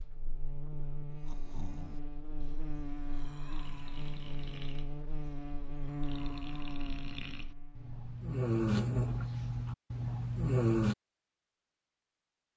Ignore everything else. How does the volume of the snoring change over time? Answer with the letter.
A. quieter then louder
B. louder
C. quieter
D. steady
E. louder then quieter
B.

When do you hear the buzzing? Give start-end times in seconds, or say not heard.
0.0-8.2.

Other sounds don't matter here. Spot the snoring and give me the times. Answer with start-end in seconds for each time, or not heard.
0.9-10.9.